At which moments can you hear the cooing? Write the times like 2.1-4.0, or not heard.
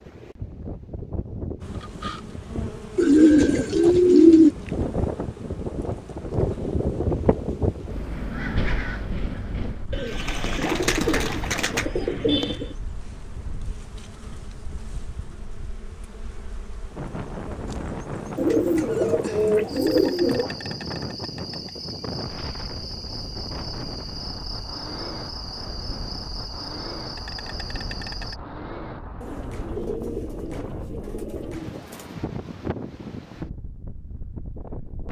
3.0-4.5, 9.9-12.8, 18.4-20.5, 29.2-32.1.